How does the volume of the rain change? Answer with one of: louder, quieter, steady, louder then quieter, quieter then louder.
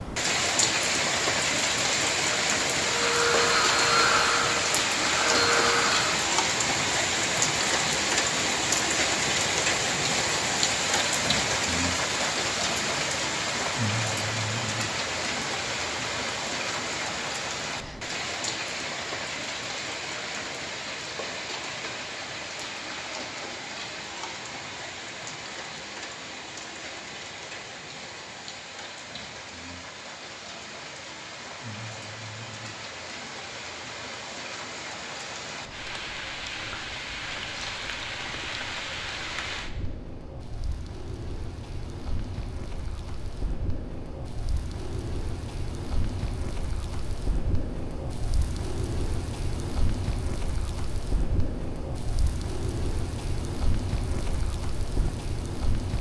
quieter.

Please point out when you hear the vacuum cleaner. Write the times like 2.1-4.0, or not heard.
2.8-6.2.